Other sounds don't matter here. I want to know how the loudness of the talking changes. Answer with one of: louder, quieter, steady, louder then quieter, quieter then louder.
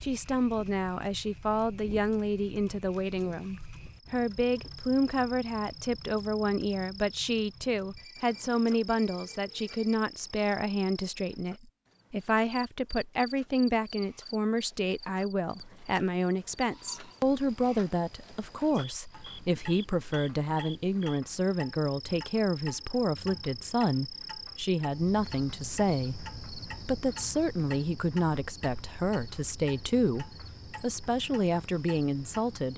steady.